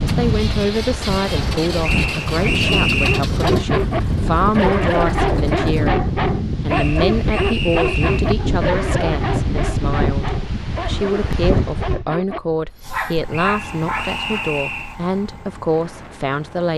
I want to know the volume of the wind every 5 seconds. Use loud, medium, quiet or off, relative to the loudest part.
loud, loud, loud, quiet.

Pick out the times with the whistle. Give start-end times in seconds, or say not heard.
1.8-3.2, 6.7-8.3, 13.3-14.9.